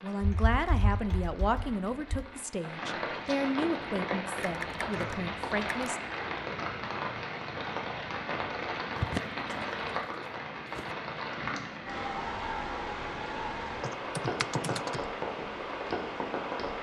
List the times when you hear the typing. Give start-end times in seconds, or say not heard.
0.2-2.2, 4.4-5.9, 8.9-10.9, 13.8-15.0.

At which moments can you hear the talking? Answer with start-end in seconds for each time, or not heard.
0.0-6.0.